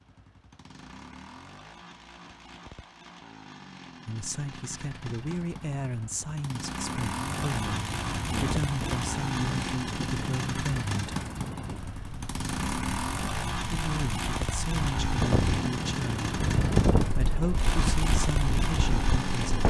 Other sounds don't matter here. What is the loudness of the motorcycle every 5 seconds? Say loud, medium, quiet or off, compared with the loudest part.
quiet, loud, loud, loud.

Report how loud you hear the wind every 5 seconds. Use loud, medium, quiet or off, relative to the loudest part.
off, medium, medium, loud.